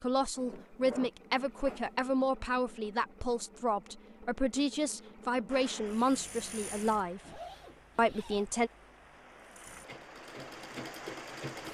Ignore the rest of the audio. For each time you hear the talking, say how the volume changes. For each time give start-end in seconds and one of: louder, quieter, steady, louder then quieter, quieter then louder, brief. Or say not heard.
0.0-8.7 steady.